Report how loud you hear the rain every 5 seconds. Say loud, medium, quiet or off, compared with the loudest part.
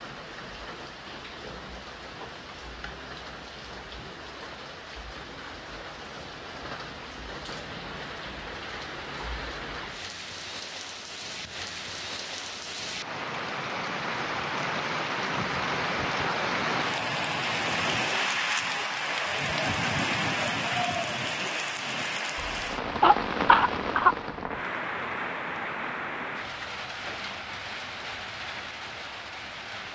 quiet, medium, medium, loud, loud, medium.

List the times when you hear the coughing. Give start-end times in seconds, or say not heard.
22.4-24.1.